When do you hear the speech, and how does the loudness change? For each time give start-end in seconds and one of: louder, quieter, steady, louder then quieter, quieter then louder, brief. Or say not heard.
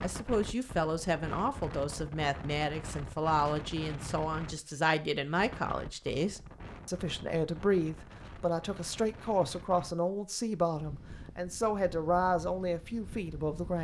0.0-13.7 steady.